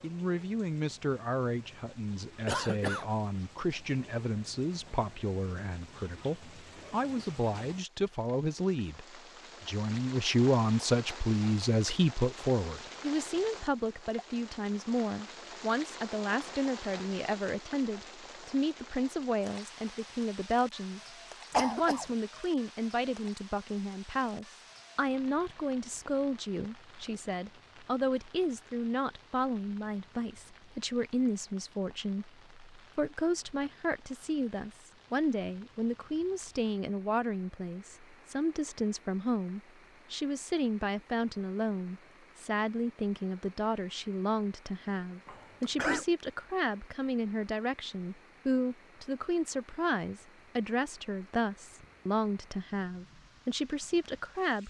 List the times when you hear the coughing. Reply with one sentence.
You can hear the coughing from 2.5 to 3.0 s, from 21.5 to 22.1 s and from 45.2 to 46.0 s.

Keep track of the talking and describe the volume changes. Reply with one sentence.
The loudness of the talking stays about the same.